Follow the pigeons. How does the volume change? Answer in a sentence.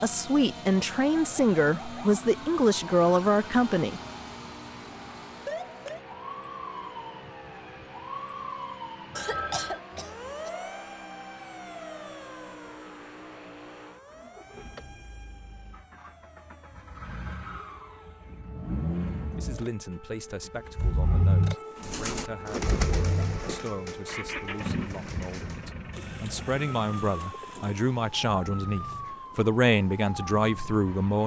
The volume of the pigeons goes down.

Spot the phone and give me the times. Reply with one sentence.
You can hear the phone from 9.1 to 9.8 s.